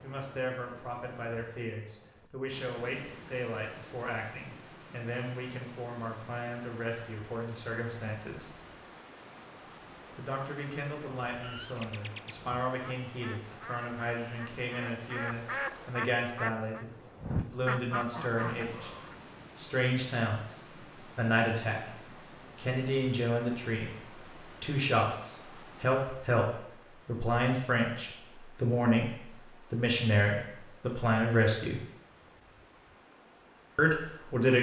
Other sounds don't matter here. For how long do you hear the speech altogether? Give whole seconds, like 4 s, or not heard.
30 s.